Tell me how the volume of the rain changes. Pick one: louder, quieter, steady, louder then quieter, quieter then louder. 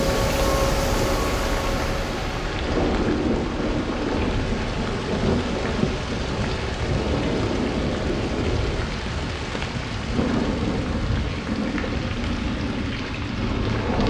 steady.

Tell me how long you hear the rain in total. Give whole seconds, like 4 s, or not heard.
14 s.